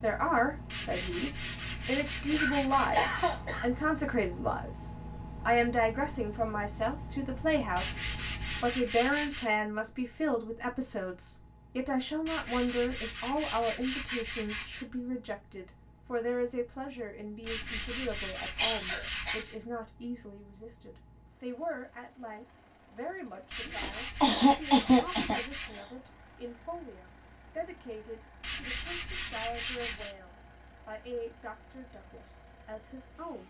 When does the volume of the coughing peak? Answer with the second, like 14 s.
25 s.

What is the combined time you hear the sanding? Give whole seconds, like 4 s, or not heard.
13 s.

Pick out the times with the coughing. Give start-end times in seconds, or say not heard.
2.3-3.6, 17.4-19.4, 23.6-25.9.